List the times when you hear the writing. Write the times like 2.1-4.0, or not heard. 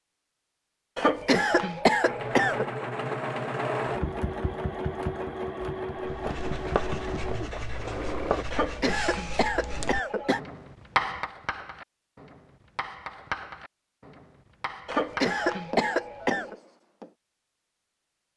6.0-17.1.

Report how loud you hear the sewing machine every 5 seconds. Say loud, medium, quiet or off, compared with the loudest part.
loud, loud, off, off.